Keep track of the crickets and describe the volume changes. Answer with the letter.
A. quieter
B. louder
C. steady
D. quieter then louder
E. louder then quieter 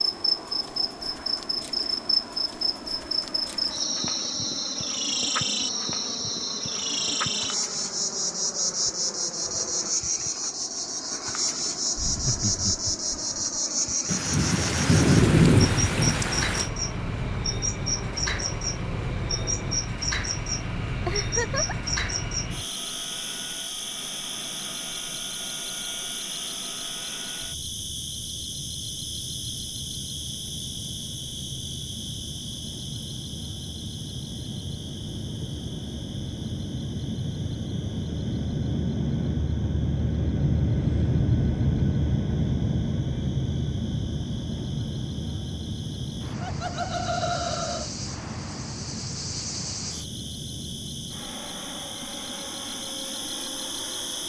D.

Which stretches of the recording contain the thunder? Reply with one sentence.
The thunder can be heard from 14.1 to 16.7 s.